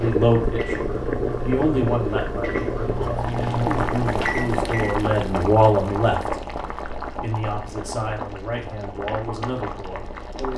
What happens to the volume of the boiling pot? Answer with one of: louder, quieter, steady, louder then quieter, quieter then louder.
quieter.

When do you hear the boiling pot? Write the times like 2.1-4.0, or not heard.
0.0-10.5.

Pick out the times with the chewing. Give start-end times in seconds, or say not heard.
not heard.